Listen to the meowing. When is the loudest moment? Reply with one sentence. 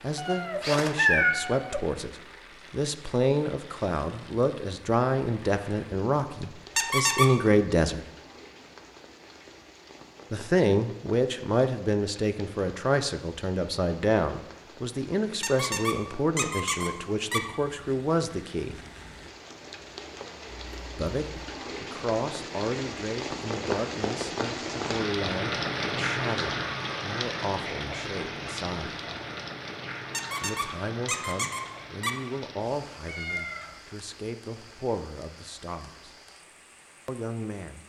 The loudest moment of the meowing is at 1 second.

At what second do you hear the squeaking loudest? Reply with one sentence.
The volume of the squeaking peaks at 7 seconds.